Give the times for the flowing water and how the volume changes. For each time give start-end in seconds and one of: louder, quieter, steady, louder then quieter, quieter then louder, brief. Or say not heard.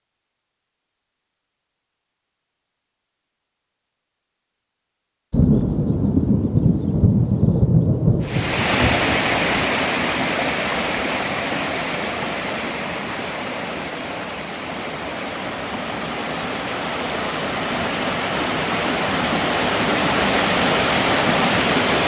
8.2-22.0 quieter then louder.